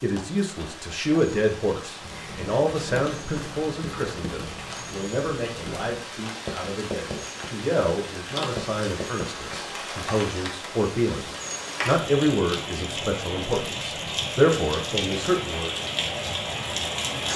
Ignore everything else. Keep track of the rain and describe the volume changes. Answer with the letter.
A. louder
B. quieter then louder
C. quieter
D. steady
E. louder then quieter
A.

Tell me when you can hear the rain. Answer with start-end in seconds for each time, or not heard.
0.0-17.3.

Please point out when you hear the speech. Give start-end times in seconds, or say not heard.
0.0-15.8.